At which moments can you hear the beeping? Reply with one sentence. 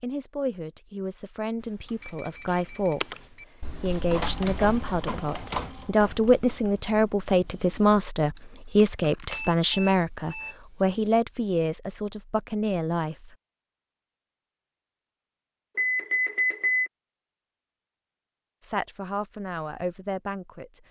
You can hear the beeping from 1.6 to 3.5 s, from 9.3 to 10.9 s and from 15.8 to 16.9 s.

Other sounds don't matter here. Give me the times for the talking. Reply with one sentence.
The talking can be heard from 0.0 to 13.3 s and from 18.6 to 20.8 s.